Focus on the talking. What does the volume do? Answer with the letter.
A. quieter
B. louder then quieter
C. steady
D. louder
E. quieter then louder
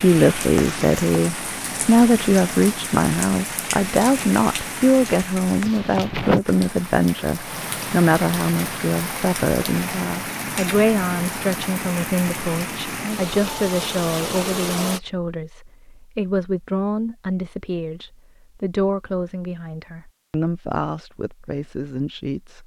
A.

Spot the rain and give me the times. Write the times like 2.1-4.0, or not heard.
0.0-15.0.